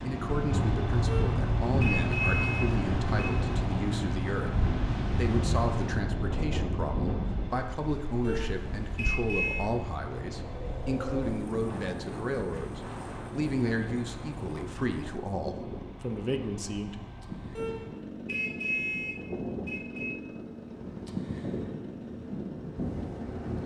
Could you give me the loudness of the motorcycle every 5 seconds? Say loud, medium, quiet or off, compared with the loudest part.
loud, medium, medium, medium, medium.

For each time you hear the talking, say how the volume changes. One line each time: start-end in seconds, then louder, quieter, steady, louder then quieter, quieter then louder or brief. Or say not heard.
0.0-16.9 steady.